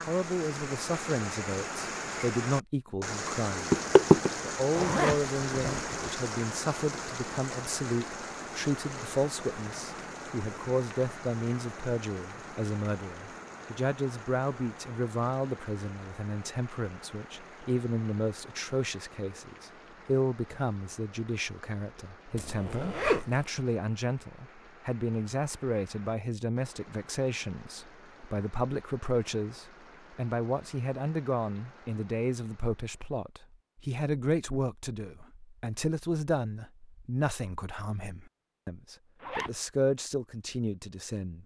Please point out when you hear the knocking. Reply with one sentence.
The knocking can be heard from 3.7 to 4.3 s.